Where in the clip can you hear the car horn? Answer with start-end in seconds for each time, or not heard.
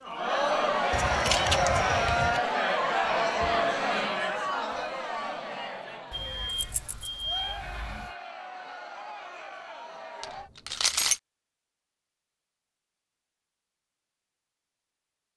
not heard.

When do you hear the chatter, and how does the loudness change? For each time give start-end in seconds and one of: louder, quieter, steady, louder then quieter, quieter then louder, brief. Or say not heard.
0.0-10.5 quieter.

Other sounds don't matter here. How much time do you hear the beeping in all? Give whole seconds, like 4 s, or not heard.
2 s.